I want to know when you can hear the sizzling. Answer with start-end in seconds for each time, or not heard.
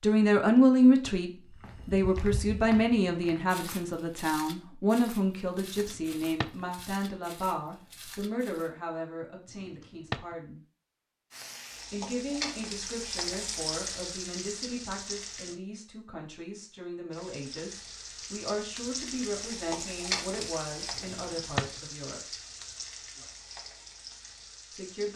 11.3-15.6, 17.1-25.1.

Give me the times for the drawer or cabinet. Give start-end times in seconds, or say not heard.
5.8-6.7, 9.5-10.3, 20.9-21.8.